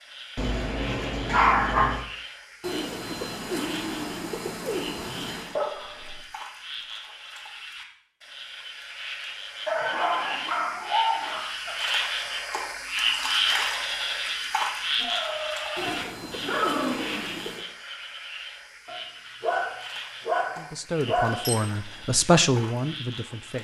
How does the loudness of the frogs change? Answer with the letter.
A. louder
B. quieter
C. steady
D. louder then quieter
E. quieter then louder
D.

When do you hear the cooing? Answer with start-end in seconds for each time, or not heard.
2.6-5.5, 15.8-17.6.